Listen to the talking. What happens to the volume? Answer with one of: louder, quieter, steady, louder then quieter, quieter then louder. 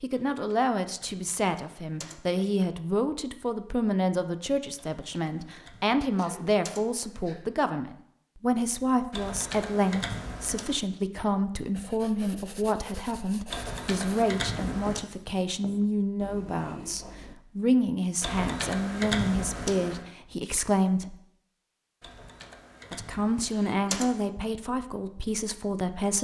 steady.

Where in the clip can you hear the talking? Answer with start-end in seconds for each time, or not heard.
0.0-21.2, 22.9-26.1.